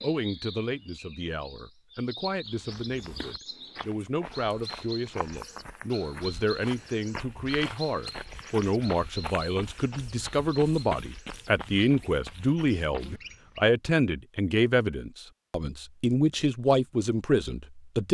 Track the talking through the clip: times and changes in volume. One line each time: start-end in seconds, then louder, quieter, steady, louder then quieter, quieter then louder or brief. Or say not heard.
0.0-18.1 louder.